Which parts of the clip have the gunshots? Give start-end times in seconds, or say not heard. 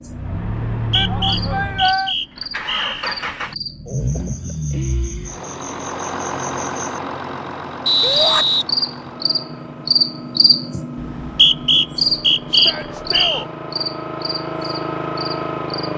not heard.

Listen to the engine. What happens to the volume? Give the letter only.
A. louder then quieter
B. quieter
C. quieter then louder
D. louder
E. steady
C.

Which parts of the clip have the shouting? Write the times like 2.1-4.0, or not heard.
0.9-2.1, 8.0-8.4, 12.5-13.5.